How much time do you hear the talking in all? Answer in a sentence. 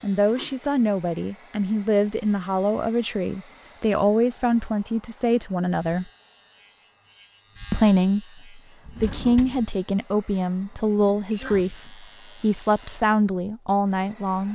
You can hear the talking for 13 seconds altogether.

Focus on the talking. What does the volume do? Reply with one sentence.
The loudness of the talking stays about the same.